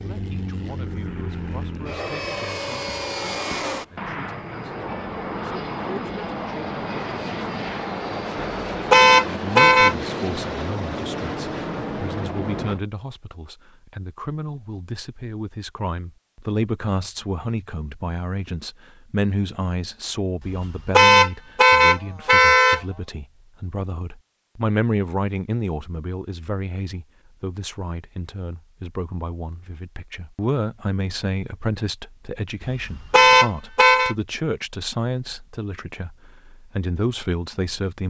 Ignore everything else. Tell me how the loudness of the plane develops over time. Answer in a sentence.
The volume of the plane stays about the same.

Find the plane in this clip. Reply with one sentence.
The plane can be heard from 0.0 to 12.8 s.